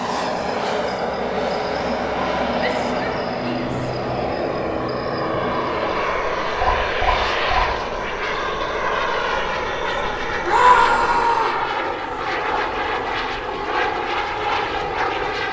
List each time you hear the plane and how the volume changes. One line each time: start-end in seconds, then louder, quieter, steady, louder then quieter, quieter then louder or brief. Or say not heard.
0.0-15.4 steady.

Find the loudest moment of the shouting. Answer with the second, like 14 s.
11 s.